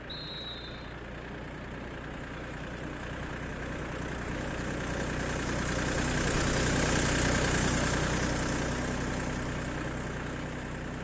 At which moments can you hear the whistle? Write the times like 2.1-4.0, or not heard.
0.1-0.9.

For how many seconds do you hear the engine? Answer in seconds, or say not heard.
11 s.